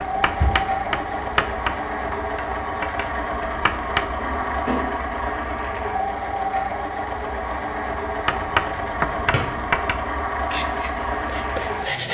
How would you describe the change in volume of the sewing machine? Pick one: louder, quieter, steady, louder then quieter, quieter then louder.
steady.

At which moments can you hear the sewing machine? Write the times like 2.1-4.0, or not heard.
0.0-12.0.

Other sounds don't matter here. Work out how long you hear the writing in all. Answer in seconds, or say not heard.
8 s.